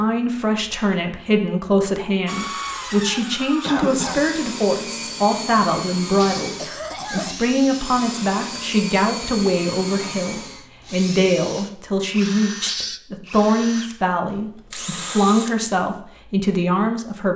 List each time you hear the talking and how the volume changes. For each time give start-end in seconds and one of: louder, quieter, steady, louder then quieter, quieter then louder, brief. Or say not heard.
0.0-17.3 steady.